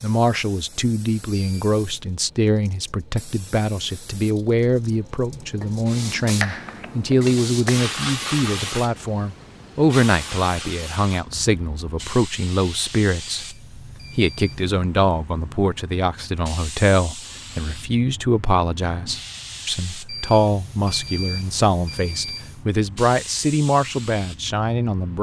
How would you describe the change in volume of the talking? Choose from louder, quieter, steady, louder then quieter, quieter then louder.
steady.